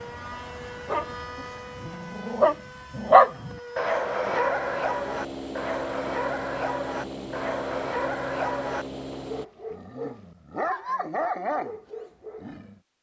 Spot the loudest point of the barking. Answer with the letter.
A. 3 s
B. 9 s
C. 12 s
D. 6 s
A.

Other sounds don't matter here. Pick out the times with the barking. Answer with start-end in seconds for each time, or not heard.
0.8-12.8.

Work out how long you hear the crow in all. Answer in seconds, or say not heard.
not heard.